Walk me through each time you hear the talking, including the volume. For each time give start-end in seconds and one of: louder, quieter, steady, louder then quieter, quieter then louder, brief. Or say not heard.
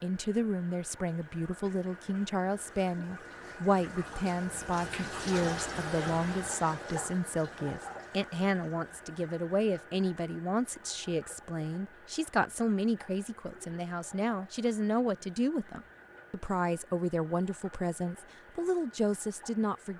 0.0-19.9 steady.